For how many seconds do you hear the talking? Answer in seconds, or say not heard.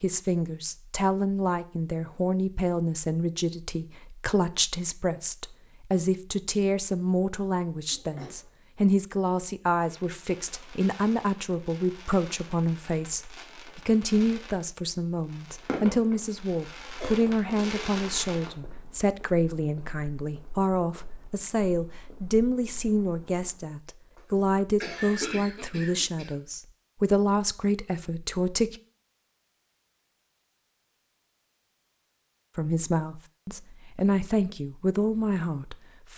32 s.